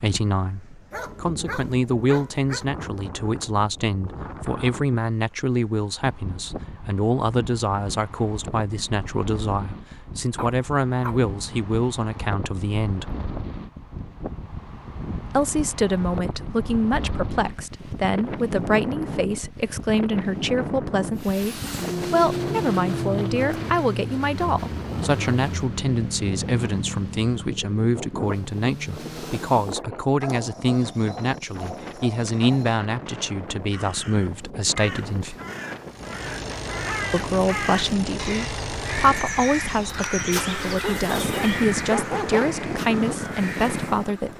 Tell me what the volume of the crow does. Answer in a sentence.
The loudness of the crow goes up.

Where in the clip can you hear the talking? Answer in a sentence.
The talking can be heard from 0.0 to 13.1 s, from 15.2 to 35.4 s and from 37.1 to 44.3 s.